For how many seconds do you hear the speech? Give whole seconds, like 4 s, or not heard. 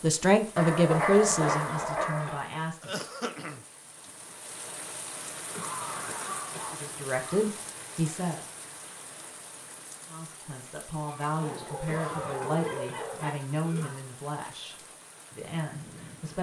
11 s.